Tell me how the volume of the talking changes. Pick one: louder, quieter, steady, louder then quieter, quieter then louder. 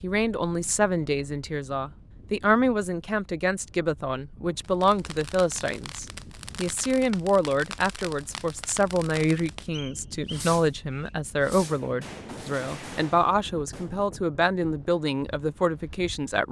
steady.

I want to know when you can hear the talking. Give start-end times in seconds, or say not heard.
0.0-16.4.